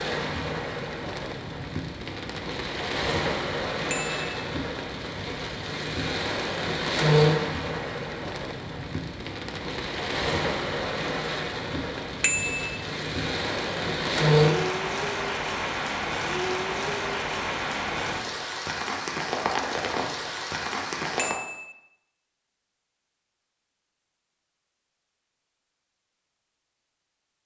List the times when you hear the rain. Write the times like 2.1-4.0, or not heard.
0.0-21.4.